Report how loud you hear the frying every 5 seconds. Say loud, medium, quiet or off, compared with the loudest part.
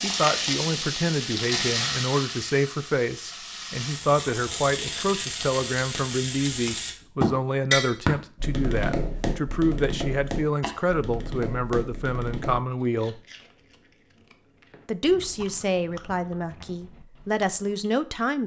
loud, loud, off, off.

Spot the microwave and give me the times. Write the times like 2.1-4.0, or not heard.
not heard.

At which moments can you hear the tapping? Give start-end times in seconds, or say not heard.
7.2-12.6.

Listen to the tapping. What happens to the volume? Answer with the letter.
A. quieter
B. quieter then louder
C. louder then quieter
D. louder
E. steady
A.